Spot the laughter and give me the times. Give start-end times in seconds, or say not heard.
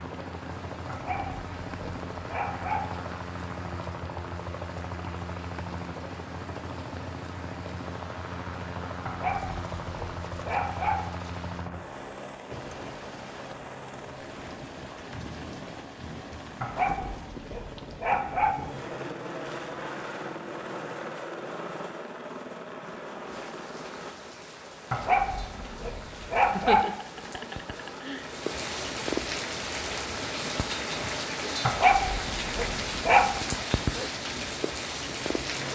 26.4-28.3.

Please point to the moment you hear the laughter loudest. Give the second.
27 s.